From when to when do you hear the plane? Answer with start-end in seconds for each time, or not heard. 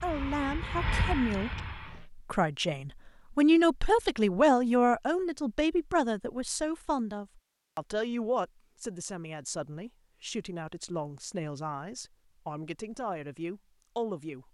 0.0-2.0.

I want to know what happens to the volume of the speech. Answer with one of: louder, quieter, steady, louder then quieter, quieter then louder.
louder then quieter.